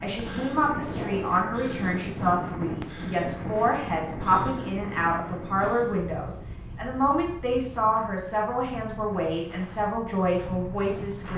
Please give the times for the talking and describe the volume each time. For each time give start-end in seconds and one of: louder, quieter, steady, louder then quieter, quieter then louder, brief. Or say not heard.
0.0-11.3 steady.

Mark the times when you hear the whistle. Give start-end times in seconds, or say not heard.
not heard.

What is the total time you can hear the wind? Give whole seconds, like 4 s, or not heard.
11 s.